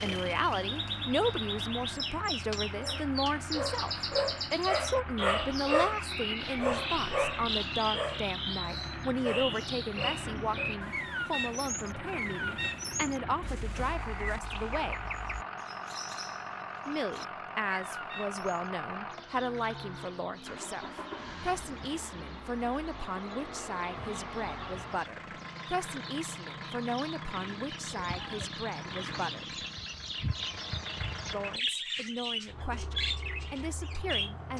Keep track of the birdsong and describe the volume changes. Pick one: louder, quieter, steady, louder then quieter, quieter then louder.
quieter then louder.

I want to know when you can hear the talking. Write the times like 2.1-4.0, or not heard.
0.0-14.9, 16.9-29.6, 31.3-34.5.